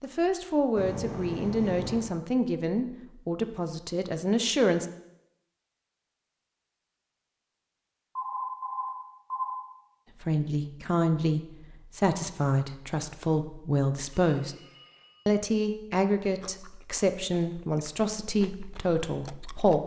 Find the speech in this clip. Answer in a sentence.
You can hear the speech from 0.0 to 4.8 s, from 10.2 to 14.6 s and from 15.2 to 19.8 s.